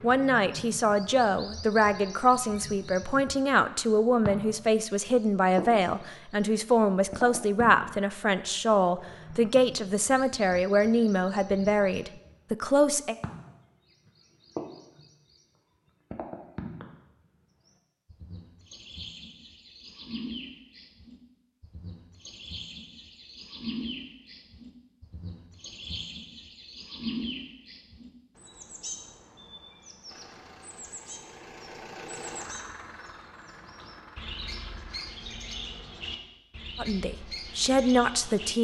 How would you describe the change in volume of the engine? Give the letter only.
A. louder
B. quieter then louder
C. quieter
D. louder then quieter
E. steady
D.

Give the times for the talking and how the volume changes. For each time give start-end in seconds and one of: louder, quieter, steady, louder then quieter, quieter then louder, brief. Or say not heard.
0.0-13.2 steady
36.8-38.6 brief.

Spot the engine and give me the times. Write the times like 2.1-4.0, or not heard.
30.1-35.1.